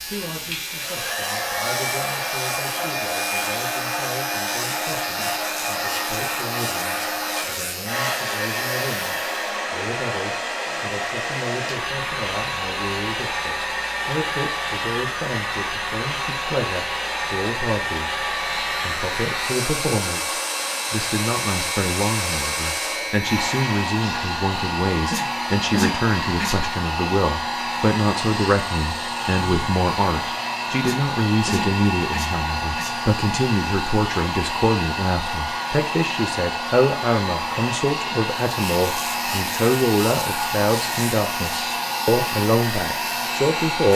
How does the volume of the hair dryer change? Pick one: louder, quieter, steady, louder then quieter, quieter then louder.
steady.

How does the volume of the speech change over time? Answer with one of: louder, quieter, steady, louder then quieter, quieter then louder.
louder.